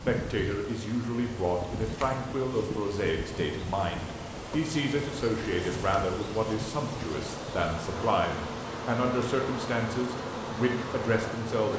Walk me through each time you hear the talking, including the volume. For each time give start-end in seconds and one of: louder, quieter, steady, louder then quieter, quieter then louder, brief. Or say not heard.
0.1-11.7 steady.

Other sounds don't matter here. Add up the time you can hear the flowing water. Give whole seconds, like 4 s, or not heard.
12 s.